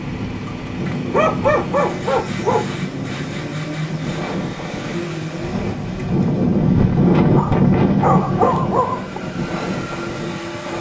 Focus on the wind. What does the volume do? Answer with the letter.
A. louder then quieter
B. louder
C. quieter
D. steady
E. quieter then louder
A.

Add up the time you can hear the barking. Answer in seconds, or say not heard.
4 s.